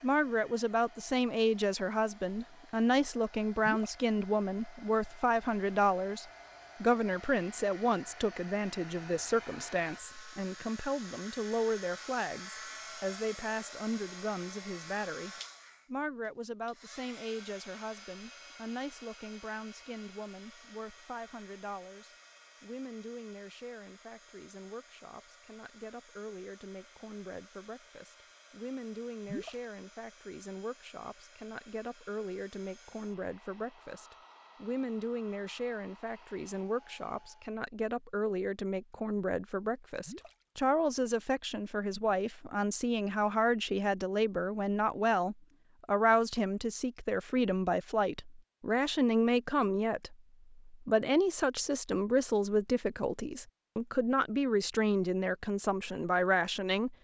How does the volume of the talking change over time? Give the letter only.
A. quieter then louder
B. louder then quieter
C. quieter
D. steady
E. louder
A.